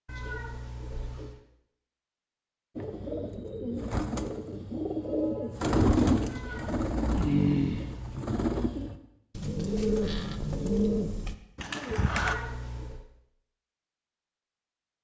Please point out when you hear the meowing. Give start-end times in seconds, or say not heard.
0.1-1.4, 6.2-8.2, 12.1-13.1.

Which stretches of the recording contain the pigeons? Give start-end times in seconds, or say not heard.
2.8-12.3.